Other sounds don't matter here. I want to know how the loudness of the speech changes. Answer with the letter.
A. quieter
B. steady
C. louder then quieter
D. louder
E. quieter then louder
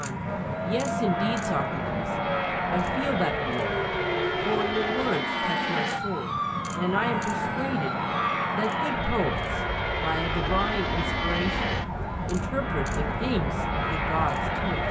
B.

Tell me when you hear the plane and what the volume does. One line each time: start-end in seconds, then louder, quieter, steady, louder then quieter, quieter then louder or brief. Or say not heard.
0.0-14.8 steady.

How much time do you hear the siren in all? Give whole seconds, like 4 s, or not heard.
15 s.